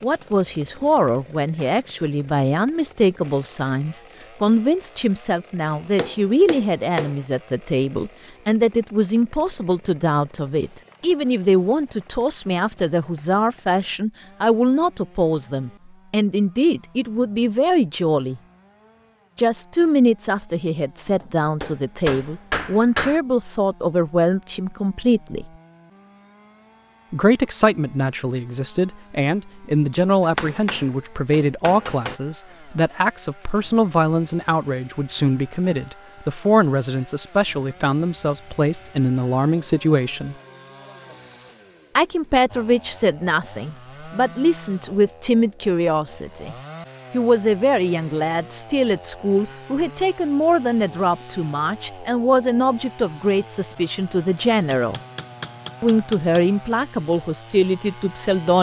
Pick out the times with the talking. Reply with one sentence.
You can hear the talking from 0.0 to 18.4 s, from 19.4 to 25.4 s, from 27.1 to 40.4 s, from 42.0 to 55.0 s and from 55.8 to 58.5 s.